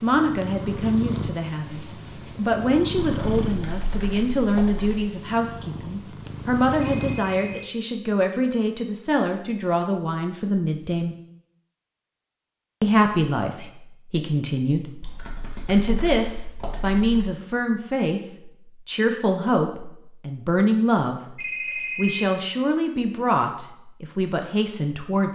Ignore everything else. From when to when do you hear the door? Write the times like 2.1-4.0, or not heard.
not heard.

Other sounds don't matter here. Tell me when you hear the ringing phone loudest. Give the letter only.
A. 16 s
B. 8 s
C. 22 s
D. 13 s
C.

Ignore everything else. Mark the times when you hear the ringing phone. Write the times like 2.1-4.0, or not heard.
6.8-7.8, 21.4-22.3.